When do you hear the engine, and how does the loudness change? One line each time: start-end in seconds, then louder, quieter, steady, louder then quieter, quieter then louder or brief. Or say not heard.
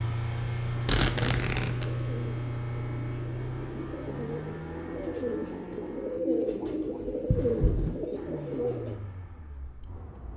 0.0-6.2 quieter
8.2-10.3 brief.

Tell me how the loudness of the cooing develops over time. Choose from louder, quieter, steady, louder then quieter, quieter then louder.
louder.